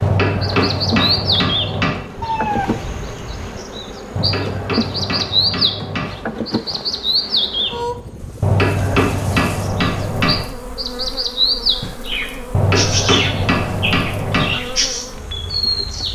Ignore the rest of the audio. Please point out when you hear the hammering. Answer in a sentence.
You can hear the hammering from 0.0 to 2.0 s, from 4.2 to 6.2 s, from 8.4 to 10.4 s and from 12.5 to 14.6 s.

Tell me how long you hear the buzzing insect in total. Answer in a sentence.
You can hear the buzzing insect for 16 seconds altogether.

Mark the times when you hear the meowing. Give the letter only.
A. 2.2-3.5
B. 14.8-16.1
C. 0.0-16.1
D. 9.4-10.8
A.